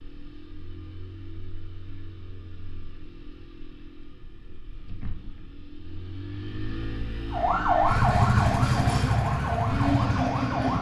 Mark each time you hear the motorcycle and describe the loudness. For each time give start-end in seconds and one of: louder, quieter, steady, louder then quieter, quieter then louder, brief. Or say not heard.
0.0-10.7 louder.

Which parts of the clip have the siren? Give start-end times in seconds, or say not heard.
7.3-10.7.